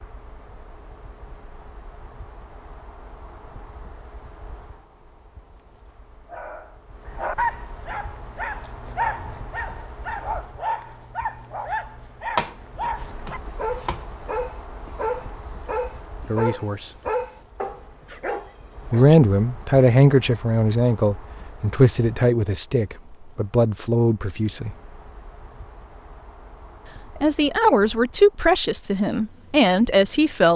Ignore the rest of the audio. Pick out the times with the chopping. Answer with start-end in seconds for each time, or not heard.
12.3-14.1.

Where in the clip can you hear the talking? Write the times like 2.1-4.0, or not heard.
16.2-16.9, 18.9-24.7, 27.1-30.5.